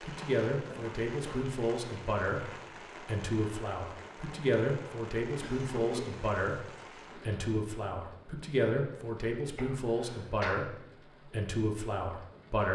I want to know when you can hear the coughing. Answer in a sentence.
You can hear the coughing from 0.7 to 1.4 s, from 5.4 to 6.2 s and from 9.6 to 10.6 s.